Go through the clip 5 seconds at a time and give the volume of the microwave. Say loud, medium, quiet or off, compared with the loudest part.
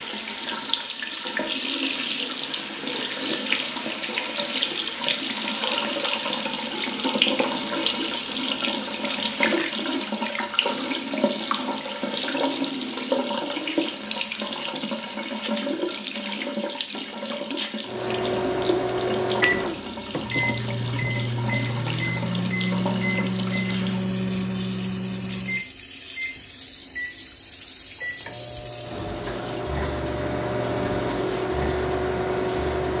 off, off, off, loud, loud, medium, loud.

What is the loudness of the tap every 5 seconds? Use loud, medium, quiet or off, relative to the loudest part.
loud, loud, loud, medium, medium, medium, medium.